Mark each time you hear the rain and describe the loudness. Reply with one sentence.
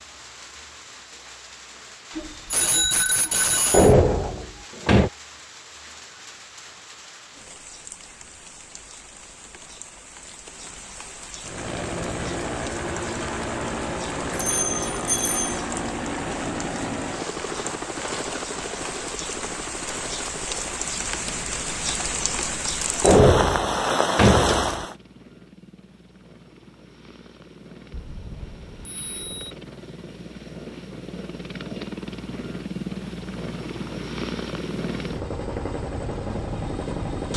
You can hear the rain from 0.0 to 24.9 s, getting louder.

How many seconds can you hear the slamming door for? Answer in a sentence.
You can hear the slamming door for 3 seconds altogether.